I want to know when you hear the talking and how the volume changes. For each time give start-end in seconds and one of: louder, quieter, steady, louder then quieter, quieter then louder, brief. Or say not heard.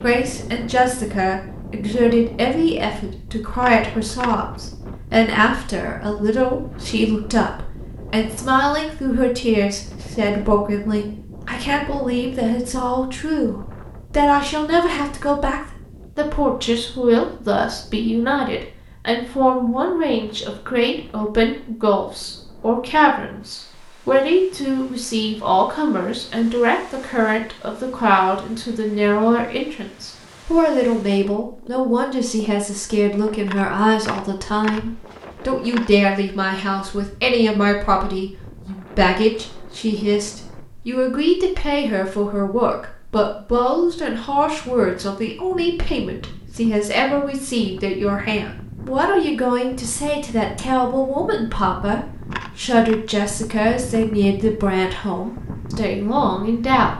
0.0-56.9 steady.